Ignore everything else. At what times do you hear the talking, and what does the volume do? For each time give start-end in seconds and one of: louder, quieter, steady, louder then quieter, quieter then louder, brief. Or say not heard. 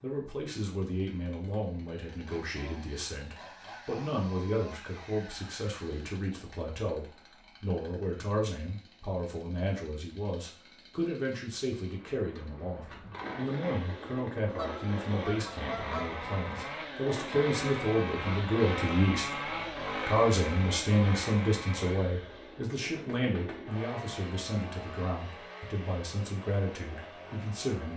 0.0-27.9 louder then quieter.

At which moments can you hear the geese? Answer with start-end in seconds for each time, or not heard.
14.4-16.1.